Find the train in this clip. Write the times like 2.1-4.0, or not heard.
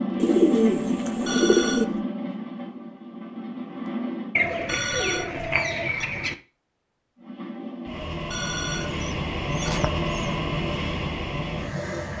0.0-4.4, 7.2-12.1.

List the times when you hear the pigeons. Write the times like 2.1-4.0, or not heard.
0.1-1.9, 4.3-6.3, 8.8-10.2.